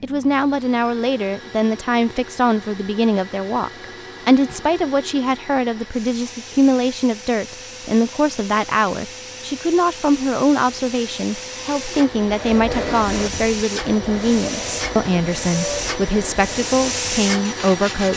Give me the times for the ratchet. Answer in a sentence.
You can't hear the ratchet here.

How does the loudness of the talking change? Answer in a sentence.
The loudness of the talking stays about the same.